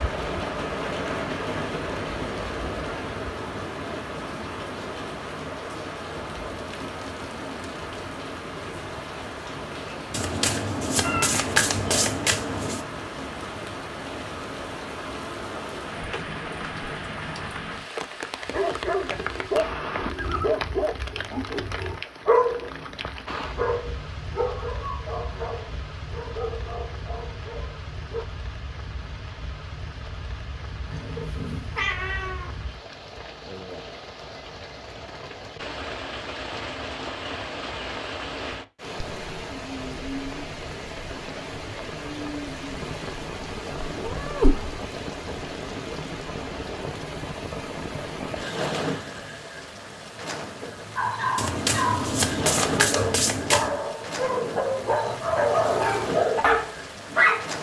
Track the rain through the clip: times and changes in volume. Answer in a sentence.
The rain can be heard from 0.0 to 57.5 s, getting quieter then louder.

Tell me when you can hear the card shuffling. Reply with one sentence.
You can hear the card shuffling from 10.1 to 12.8 s and from 51.4 to 53.8 s.